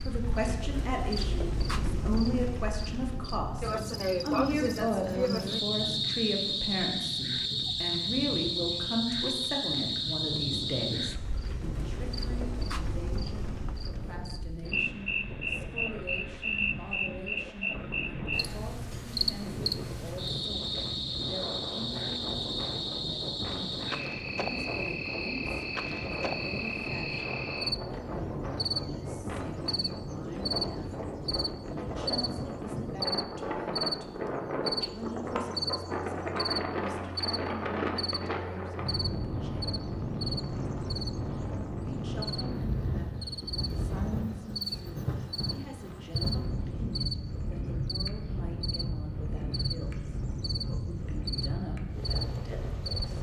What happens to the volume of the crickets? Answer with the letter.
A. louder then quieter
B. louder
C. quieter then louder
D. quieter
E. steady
D.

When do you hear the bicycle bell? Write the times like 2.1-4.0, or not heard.
not heard.